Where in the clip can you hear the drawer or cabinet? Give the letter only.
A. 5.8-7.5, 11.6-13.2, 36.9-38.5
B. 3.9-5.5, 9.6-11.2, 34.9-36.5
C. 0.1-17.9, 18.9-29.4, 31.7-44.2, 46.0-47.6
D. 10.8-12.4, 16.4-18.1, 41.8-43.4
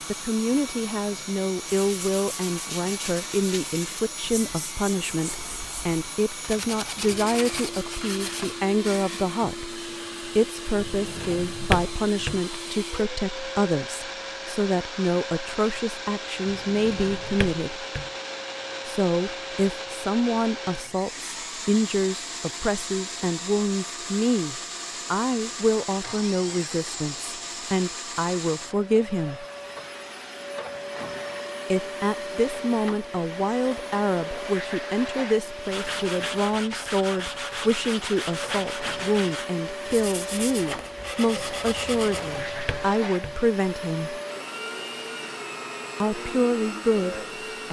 D.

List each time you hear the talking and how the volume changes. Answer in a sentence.
You can hear the talking from 0.1 to 17.9 s, at a steady volume; from 18.9 to 29.4 s, at a steady volume; from 31.7 to 44.2 s, at a steady volume; and briefly from 46.0 to 47.6 s.